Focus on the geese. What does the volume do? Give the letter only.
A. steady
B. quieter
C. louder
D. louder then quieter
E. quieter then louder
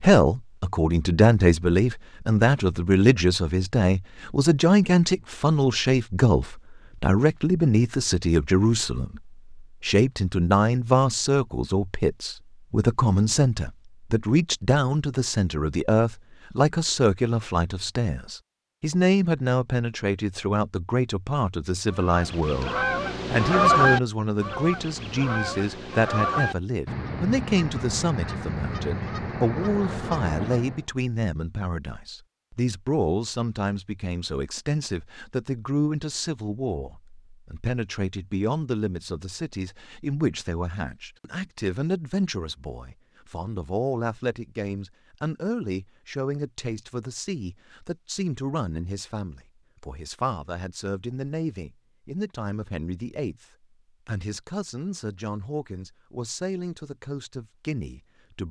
B.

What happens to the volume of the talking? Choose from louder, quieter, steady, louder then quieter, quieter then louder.
quieter.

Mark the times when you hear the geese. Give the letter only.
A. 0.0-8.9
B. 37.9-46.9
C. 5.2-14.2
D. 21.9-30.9
D.